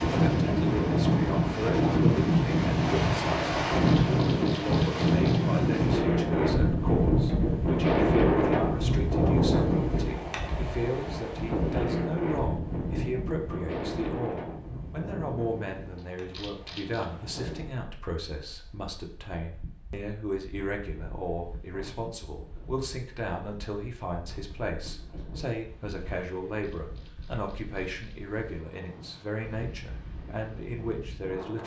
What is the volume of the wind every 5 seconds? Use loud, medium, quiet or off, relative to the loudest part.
loud, loud, medium, quiet, quiet, quiet, quiet.